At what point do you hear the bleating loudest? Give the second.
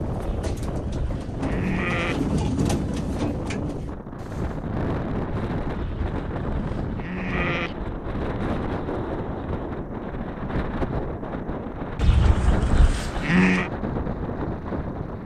13 s.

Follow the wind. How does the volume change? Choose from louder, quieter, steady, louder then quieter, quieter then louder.
steady.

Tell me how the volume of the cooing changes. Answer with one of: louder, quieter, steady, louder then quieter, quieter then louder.
louder then quieter.